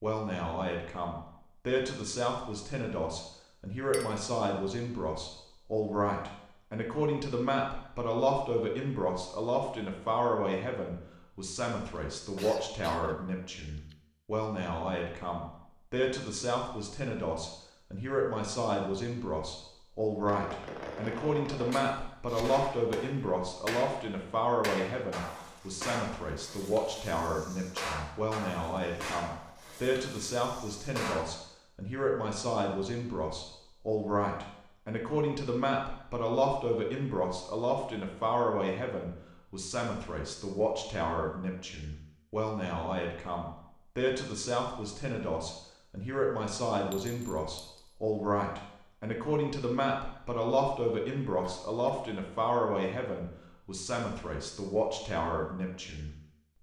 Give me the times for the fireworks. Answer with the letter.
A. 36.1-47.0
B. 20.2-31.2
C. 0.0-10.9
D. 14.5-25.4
B.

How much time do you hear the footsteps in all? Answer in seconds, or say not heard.
not heard.